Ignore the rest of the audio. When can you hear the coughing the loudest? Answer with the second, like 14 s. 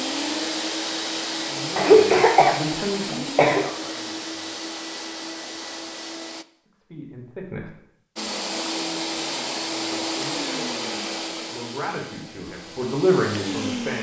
2 s.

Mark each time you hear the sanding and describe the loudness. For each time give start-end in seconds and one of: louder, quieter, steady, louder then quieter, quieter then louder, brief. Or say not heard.
not heard.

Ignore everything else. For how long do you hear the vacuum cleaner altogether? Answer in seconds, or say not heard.
12 s.